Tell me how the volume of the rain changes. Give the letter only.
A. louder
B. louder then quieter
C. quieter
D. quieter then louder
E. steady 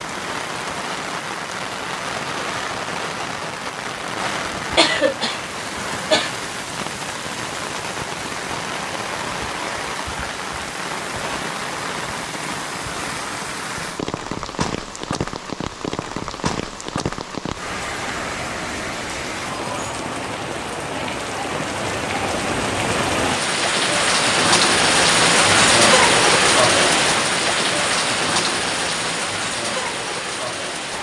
A.